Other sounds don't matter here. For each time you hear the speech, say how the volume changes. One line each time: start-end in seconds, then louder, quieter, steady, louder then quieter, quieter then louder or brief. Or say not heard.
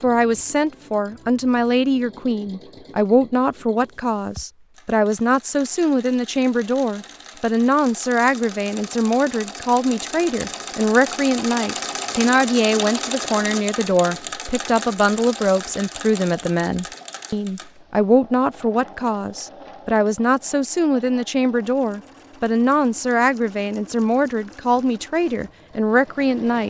0.0-26.6 steady.